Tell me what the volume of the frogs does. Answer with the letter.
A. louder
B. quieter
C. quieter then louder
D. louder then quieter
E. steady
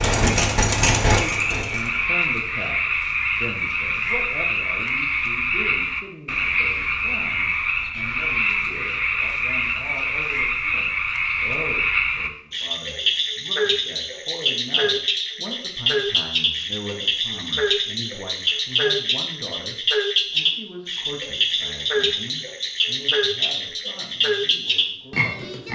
E.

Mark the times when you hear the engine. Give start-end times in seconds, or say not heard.
0.0-2.0.